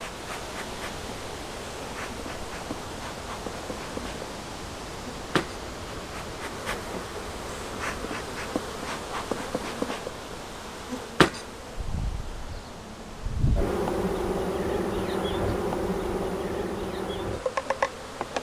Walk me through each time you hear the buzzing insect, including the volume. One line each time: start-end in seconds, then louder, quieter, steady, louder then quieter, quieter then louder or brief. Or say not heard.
0.0-18.3 louder.